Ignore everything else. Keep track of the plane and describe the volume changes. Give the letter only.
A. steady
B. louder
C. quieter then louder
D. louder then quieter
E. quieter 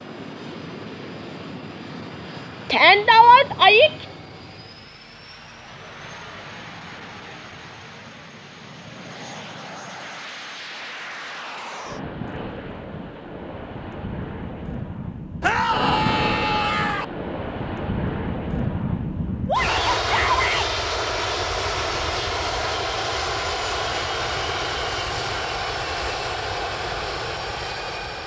B.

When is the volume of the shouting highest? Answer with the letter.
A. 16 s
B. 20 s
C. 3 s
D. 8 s
C.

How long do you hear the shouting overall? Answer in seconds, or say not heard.
4 s.